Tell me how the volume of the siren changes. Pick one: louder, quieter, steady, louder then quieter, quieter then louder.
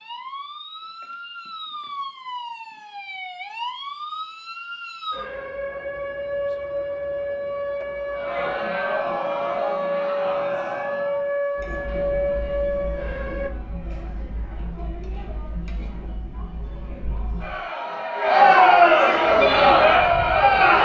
louder.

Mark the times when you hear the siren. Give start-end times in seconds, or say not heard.
0.0-13.5.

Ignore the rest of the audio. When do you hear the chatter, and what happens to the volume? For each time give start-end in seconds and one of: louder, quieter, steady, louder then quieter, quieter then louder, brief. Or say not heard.
8.1-20.8 quieter then louder.